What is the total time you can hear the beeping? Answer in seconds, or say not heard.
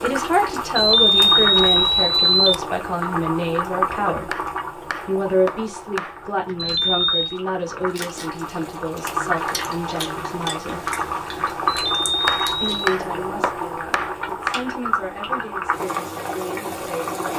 4 s.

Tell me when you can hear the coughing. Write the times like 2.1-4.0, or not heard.
not heard.